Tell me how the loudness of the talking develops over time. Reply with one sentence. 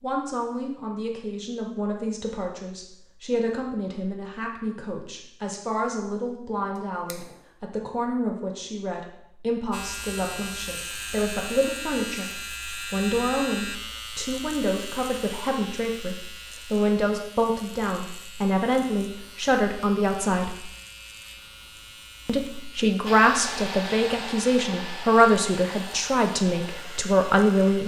The loudness of the talking goes up.